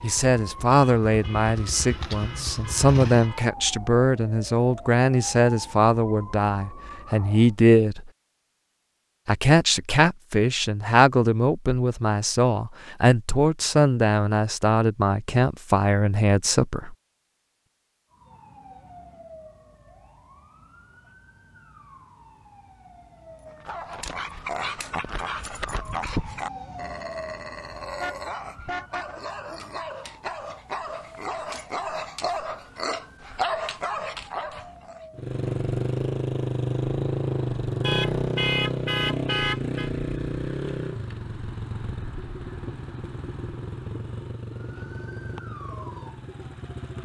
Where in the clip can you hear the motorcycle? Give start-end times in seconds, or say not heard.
0.0-3.3, 35.1-47.0.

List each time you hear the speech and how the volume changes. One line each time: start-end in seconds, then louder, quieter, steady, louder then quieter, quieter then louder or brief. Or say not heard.
0.0-8.1 steady
9.2-16.9 steady.